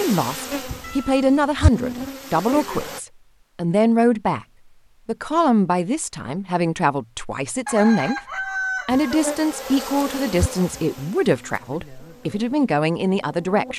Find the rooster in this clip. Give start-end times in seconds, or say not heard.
7.7-9.2.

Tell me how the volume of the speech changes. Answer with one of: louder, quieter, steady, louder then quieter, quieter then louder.
steady.